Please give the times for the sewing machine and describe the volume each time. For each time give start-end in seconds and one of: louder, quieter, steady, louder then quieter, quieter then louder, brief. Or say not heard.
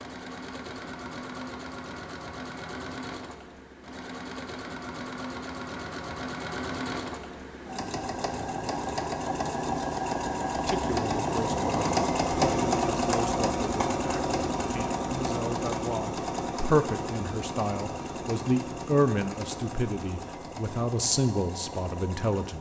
0.0-22.5 louder then quieter.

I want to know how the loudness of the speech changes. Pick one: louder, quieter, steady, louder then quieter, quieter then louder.
louder.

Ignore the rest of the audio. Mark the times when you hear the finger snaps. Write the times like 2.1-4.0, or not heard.
not heard.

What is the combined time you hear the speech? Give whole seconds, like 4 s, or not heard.
12 s.